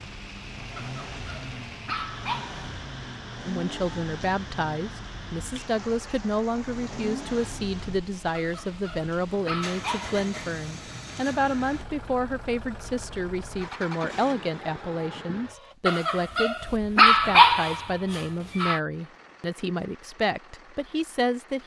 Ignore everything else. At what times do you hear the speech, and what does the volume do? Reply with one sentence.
The speech can be heard from 3.5 to 21.6 s, at a steady volume.